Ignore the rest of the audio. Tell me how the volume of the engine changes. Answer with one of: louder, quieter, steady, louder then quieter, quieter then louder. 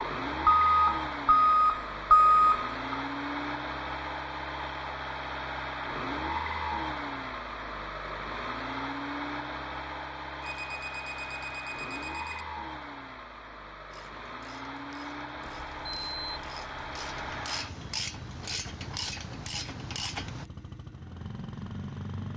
quieter.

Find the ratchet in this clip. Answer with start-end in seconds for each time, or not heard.
13.9-20.5.